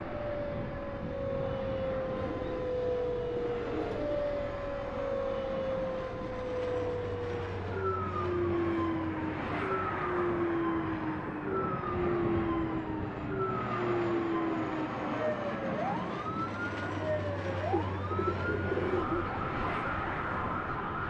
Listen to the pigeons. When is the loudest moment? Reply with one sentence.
The volume of the pigeons peaks at 19 seconds.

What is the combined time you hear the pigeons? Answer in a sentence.
You can hear the pigeons for 4 seconds altogether.